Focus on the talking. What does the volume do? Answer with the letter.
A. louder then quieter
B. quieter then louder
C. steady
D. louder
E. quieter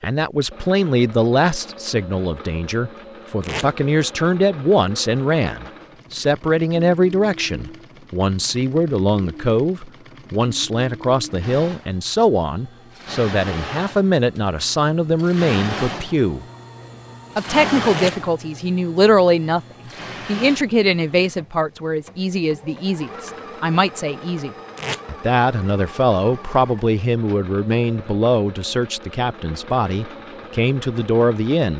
C.